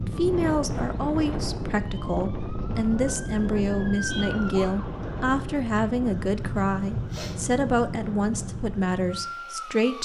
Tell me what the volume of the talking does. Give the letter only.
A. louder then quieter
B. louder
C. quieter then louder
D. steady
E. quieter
D.